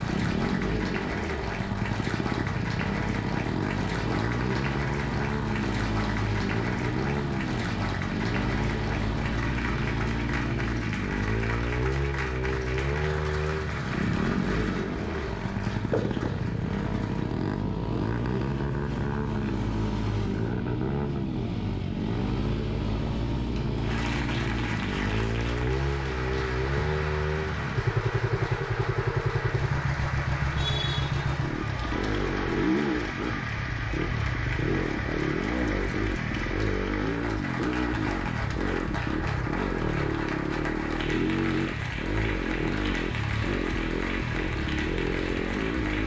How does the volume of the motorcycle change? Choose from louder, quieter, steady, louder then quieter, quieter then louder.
steady.